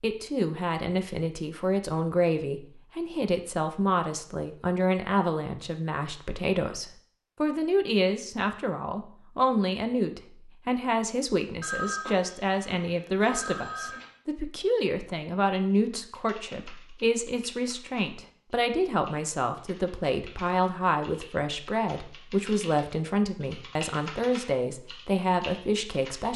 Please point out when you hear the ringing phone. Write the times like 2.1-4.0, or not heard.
11.6-14.1.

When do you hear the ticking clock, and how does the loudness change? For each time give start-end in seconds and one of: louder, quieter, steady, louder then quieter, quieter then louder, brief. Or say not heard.
not heard.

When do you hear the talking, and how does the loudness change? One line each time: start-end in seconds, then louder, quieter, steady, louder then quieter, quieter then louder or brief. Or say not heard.
0.0-26.3 steady.